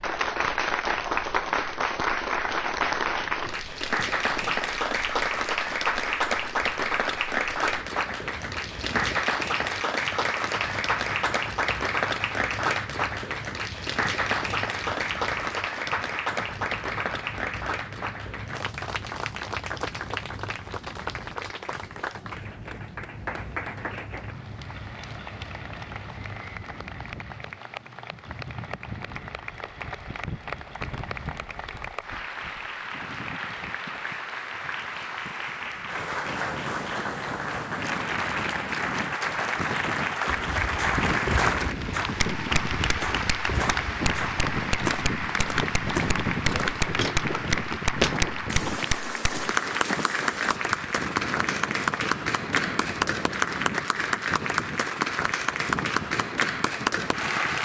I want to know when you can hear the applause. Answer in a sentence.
The applause can be heard from 0.0 to 57.6 s.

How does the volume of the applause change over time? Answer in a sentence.
The volume of the applause goes down, then up.